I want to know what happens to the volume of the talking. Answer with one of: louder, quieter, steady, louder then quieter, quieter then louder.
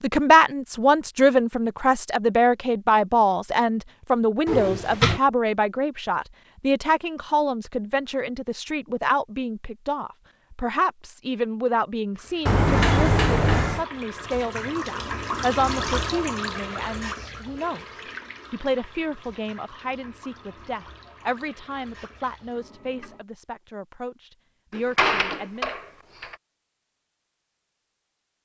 quieter.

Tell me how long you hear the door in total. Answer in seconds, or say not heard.
4 s.